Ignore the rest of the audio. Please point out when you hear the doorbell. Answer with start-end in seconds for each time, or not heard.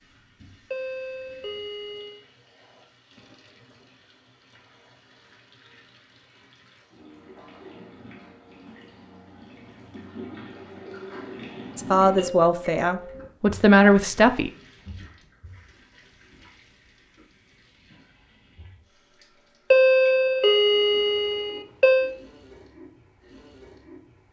0.7-2.2, 12.2-13.3, 19.7-22.1.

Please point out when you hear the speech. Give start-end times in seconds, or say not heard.
11.8-14.5.